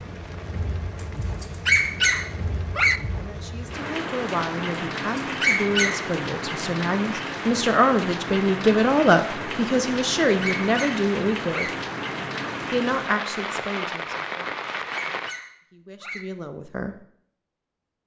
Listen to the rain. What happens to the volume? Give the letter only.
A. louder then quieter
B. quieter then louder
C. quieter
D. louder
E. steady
D.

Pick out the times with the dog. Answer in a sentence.
The dog can be heard from 1.4 to 3.0 s, from 5.2 to 6.1 s, from 10.4 to 11.8 s and from 14.9 to 16.2 s.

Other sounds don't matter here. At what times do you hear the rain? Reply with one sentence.
You can hear the rain from 0.0 to 15.3 s.